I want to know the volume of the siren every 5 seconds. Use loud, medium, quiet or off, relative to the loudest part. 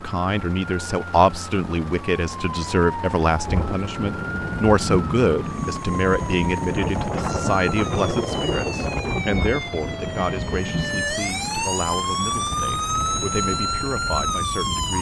medium, medium, loud.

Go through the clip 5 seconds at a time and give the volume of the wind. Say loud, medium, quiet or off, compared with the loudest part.
loud, loud, medium.